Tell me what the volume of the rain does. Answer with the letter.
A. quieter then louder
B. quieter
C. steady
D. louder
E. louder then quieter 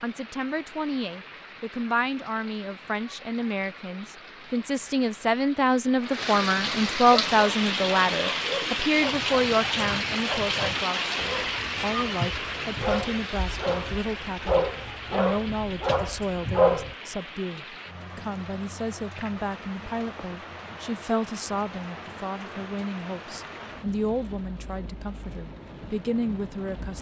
E.